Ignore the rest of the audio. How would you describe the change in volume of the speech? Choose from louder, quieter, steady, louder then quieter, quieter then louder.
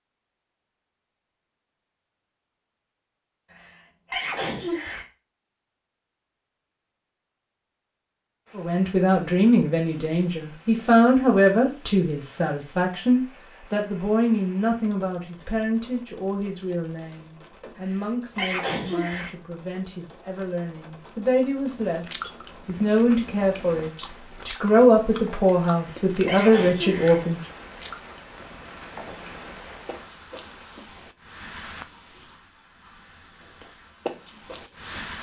quieter then louder.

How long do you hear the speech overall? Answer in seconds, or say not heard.
19 s.